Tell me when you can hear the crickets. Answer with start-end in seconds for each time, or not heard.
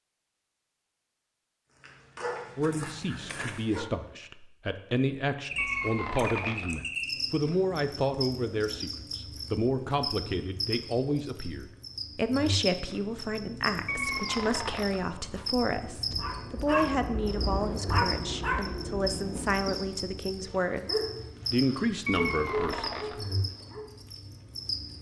5.5-24.9.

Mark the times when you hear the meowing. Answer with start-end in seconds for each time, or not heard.
5.5-6.8, 13.8-15.1, 22.1-23.2.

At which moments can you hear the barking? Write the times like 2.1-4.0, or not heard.
1.7-3.9, 15.2-23.9.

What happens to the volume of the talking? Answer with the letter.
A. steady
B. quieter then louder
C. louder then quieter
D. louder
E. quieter
A.